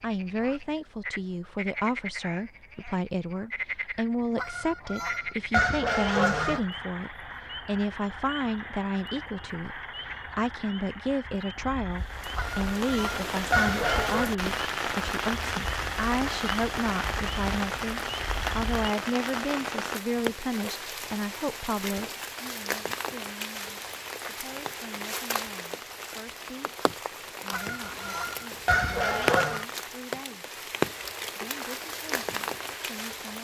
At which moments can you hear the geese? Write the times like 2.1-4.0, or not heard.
4.3-6.6, 12.3-14.3, 27.5-29.6.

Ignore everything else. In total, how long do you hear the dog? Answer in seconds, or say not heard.
not heard.